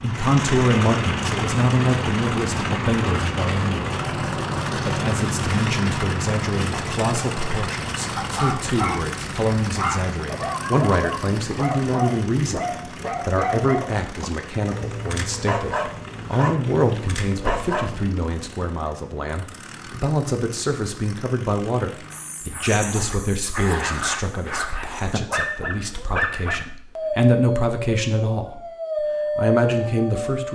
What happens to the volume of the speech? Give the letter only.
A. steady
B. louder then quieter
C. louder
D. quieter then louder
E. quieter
A.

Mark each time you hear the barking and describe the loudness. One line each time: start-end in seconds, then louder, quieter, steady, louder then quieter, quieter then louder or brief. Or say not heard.
8.2-18.1 steady
22.1-30.5 louder.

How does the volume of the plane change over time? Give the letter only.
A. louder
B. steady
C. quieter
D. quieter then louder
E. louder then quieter
C.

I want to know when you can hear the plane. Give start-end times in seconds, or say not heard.
0.0-22.6.